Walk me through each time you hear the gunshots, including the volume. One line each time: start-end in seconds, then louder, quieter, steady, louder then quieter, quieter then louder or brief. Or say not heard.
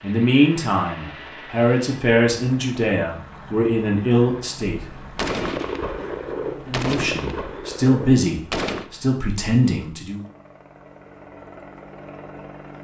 4.9-8.9 quieter.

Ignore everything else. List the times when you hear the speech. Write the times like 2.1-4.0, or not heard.
0.0-4.8, 6.7-10.2.